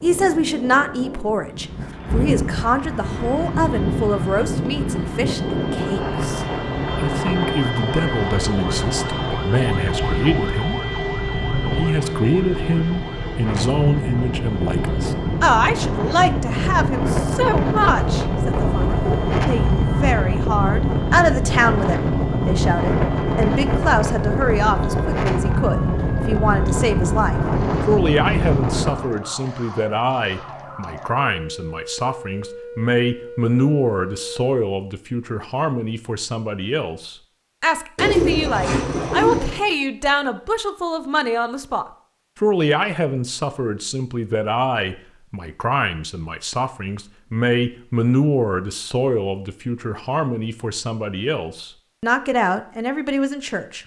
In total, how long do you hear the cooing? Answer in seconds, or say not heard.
3 s.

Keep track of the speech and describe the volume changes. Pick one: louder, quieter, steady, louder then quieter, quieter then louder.
steady.